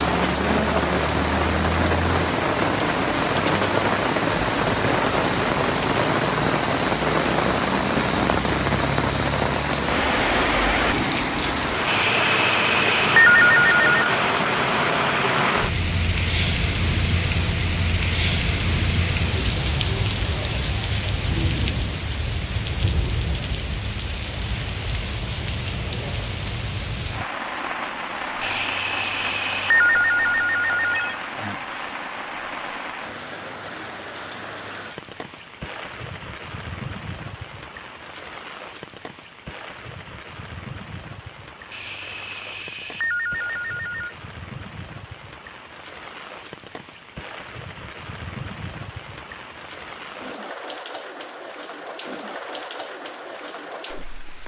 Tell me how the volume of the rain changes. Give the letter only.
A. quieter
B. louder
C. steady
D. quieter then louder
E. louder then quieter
A.